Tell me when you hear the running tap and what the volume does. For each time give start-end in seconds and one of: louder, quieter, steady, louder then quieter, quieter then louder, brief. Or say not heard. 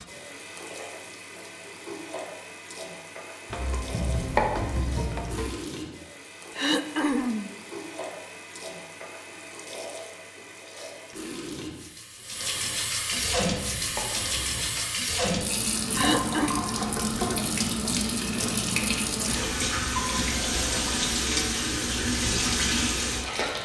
0.0-23.6 louder.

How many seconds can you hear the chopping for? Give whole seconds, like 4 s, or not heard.
4 s.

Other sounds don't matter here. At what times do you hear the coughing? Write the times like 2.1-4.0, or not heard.
6.5-7.5, 15.9-16.6.